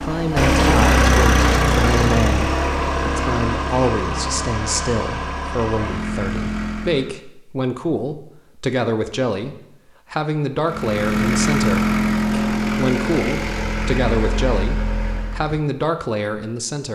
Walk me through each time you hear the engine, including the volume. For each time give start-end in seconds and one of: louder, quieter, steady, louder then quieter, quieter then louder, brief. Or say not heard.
0.0-7.2 quieter
10.7-15.6 quieter.